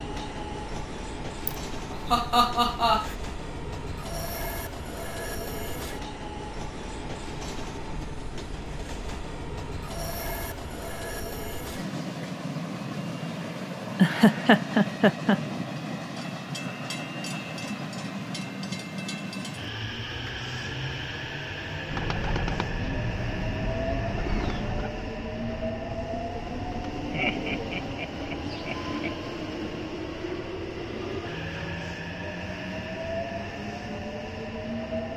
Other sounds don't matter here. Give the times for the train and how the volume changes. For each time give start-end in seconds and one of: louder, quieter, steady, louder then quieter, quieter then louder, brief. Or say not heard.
0.0-35.1 steady.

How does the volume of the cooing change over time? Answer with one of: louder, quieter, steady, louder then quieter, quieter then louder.
quieter.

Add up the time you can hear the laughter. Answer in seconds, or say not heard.
5 s.